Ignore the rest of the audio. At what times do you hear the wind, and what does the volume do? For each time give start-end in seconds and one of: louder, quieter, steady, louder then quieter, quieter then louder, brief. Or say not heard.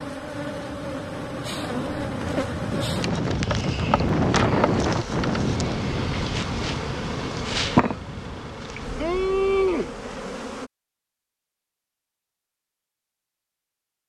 0.0-8.7 louder then quieter.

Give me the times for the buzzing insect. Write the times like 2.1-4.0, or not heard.
0.0-10.7.